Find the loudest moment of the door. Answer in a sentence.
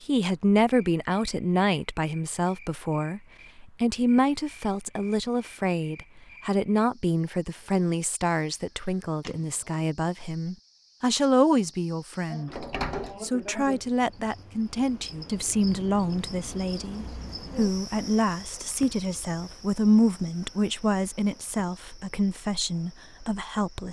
The loudest moment of the door is at 13 seconds.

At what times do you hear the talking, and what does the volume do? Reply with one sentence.
You can hear the talking from 0.1 to 23.8 s, at a steady volume.